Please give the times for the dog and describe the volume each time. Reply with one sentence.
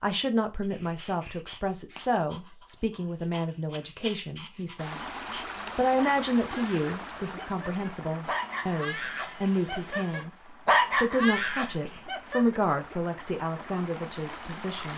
The dog can be heard from 0.6 to 12.6 s, getting louder.